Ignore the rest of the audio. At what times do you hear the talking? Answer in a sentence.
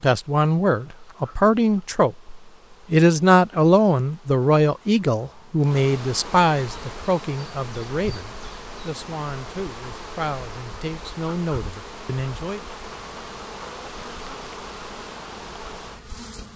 You can hear the talking from 0.0 to 12.6 s.